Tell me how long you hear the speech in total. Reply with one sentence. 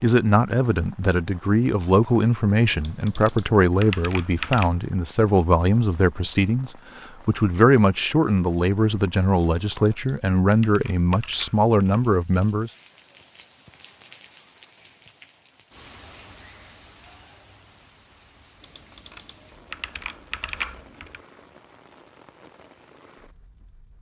You can hear the speech for 13 seconds altogether.